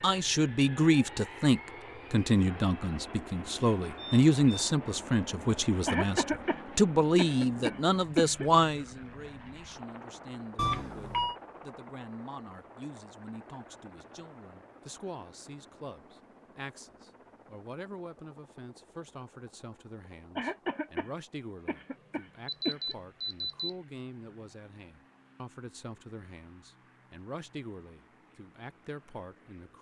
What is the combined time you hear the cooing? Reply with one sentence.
The cooing can't be heard in this clip.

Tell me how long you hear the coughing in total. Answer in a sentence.
You can hear the coughing for 5 seconds altogether.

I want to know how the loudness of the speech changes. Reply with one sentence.
The volume of the speech goes down.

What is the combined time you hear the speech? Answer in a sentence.
You can hear the speech for 30 seconds altogether.